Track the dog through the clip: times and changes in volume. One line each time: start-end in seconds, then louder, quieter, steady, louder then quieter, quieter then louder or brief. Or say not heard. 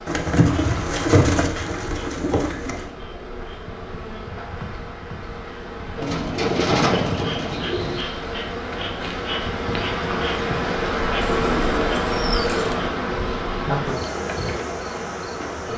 not heard.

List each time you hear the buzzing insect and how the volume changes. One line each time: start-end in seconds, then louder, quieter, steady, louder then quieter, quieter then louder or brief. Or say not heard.
0.0-15.7 louder.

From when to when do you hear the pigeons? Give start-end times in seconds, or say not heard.
0.1-2.9, 6.0-8.1, 11.2-12.8.